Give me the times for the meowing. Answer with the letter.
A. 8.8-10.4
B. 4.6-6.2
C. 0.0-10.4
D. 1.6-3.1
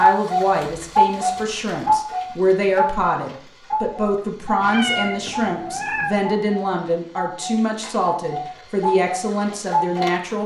B.